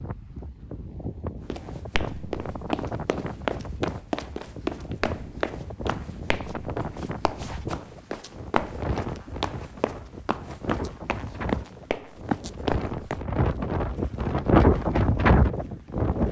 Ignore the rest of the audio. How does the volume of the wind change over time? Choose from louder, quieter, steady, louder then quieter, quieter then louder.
louder.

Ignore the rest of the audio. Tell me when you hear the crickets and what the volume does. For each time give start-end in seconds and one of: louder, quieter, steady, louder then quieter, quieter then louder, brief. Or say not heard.
not heard.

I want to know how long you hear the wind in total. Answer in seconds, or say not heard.
16 s.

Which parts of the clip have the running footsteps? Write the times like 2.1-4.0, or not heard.
1.5-13.2.